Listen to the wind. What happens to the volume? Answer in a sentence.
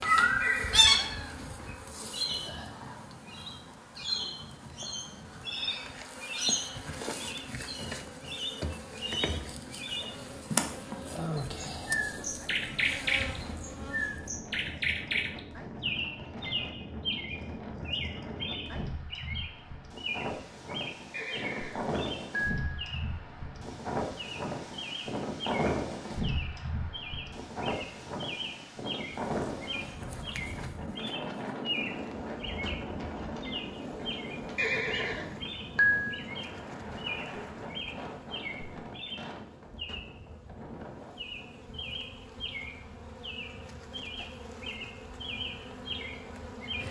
The loudness of the wind goes up, then down.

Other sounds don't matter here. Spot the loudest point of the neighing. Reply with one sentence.
The volume of the neighing peaks at 36 seconds.